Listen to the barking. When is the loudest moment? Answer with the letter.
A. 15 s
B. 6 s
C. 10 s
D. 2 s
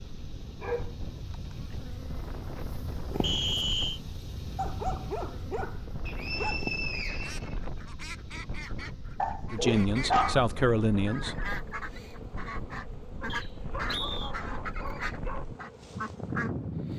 C.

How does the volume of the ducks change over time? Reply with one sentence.
The loudness of the ducks goes up.